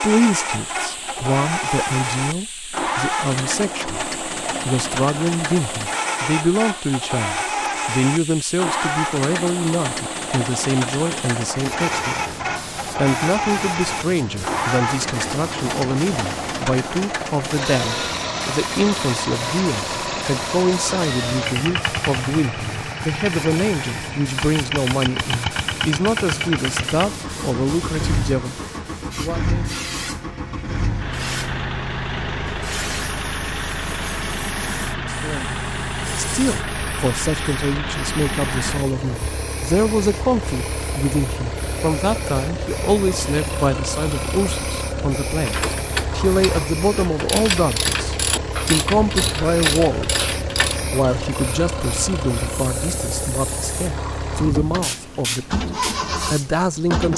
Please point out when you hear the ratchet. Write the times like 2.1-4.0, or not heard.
45.4-50.8.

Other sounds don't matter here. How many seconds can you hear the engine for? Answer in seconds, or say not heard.
57 s.